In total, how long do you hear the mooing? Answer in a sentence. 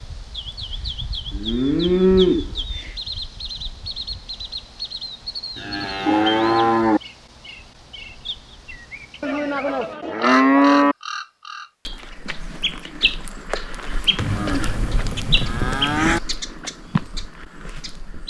The mooing can be heard for 7 seconds in total.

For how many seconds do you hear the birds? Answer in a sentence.
The birds can be heard for 18 seconds in total.